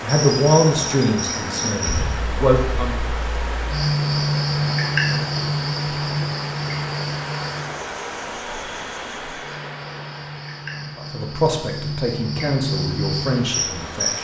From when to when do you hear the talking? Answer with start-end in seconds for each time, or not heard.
0.0-3.0, 10.9-14.2.